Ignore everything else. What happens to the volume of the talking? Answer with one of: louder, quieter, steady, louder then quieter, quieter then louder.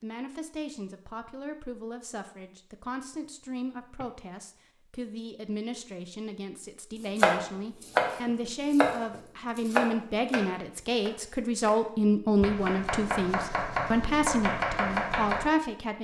louder.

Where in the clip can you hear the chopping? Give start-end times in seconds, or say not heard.
7.2-11.8, 12.4-15.4.